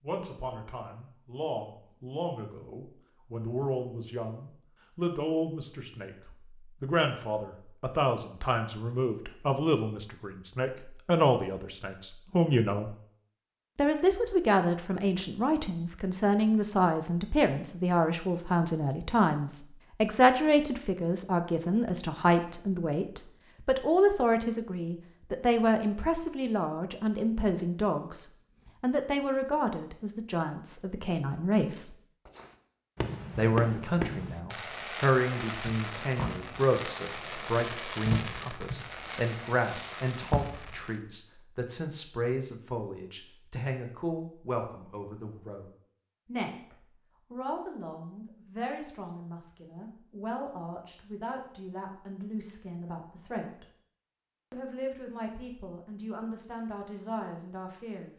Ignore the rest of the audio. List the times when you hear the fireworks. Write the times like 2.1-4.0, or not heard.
32.2-41.0.